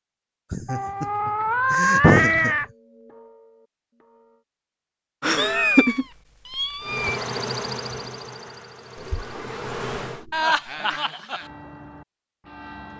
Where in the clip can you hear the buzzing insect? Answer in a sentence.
You can hear the buzzing insect from 6.8 to 10.2 s.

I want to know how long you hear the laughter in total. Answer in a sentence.
The laughter can be heard for 4 seconds in total.